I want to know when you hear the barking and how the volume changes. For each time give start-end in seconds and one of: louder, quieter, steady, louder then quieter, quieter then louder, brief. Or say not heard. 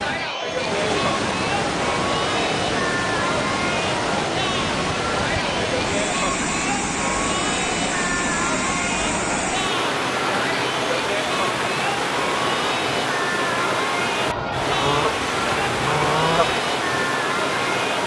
not heard.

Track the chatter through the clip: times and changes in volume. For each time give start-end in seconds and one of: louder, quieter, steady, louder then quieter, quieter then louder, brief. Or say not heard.
0.0-18.0 steady.